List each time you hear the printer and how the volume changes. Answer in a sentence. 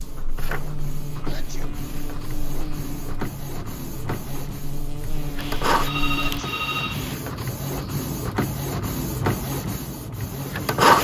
The printer can be heard from 0.0 to 10.9 s, getting louder.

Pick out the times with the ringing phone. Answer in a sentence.
You can hear the ringing phone from 5.3 to 7.2 s.